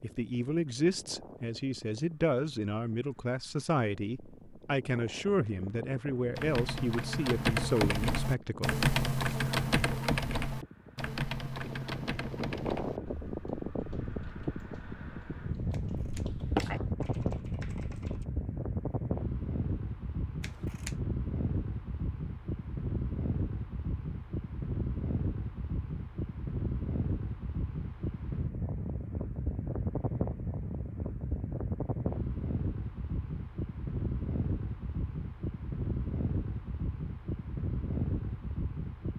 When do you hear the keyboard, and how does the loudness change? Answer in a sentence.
The keyboard can be heard from 6.3 to 18.2 s, getting quieter.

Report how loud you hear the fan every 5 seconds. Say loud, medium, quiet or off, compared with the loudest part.
quiet, medium, loud, loud, loud, loud, loud, loud.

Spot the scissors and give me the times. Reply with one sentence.
You can hear the scissors from 15.7 to 16.8 s and from 20.4 to 20.9 s.